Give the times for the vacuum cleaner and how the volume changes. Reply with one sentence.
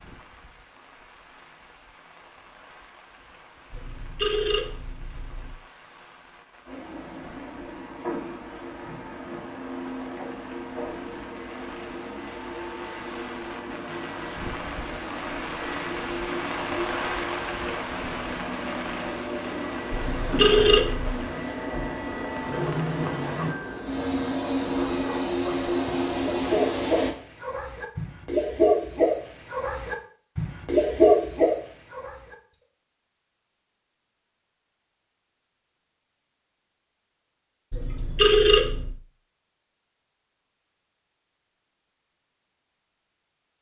The vacuum cleaner can be heard from 6.7 to 27.1 s, getting louder.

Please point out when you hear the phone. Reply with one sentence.
The phone can be heard from 3.7 to 5.5 s, from 19.9 to 21.2 s and from 37.7 to 39.0 s.